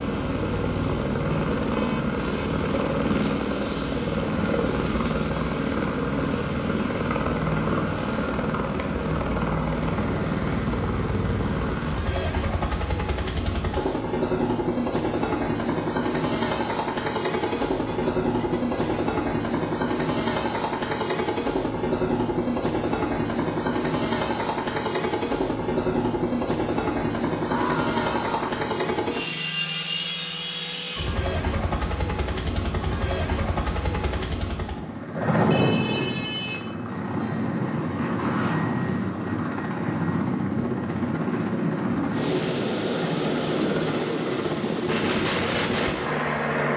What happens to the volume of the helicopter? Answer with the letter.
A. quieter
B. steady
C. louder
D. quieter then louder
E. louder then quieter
B.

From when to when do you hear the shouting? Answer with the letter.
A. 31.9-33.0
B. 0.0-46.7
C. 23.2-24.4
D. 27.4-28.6
D.